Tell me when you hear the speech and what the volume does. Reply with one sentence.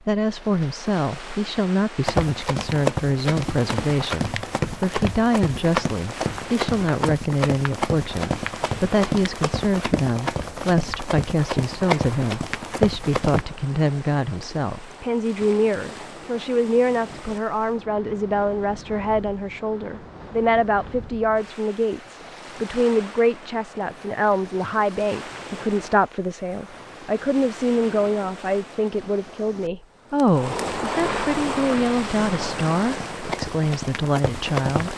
The speech can be heard from 0.1 to 34.9 s, at a steady volume.